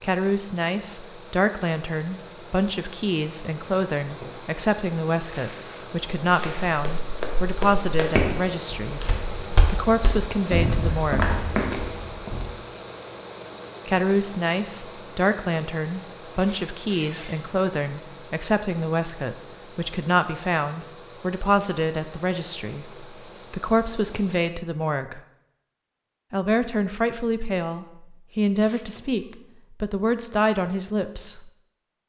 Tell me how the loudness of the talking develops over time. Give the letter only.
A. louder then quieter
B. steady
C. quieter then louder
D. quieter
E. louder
B.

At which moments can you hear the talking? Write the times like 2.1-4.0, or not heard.
0.0-11.3, 13.8-25.2, 26.3-31.5.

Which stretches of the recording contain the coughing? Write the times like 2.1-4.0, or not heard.
not heard.